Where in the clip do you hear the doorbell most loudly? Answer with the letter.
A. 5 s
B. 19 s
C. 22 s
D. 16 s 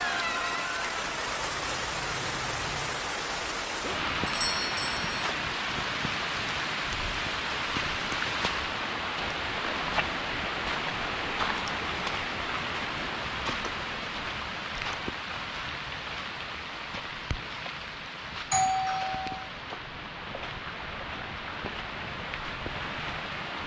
B.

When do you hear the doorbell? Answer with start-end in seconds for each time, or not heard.
4.2-5.3, 18.5-19.5.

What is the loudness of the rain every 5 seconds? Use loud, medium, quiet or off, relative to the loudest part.
loud, loud, loud, medium, medium.